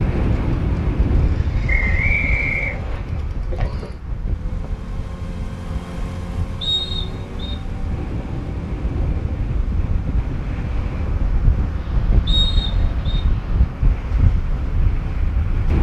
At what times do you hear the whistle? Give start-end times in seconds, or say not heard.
1.6-3.0, 6.6-7.5, 12.2-13.2.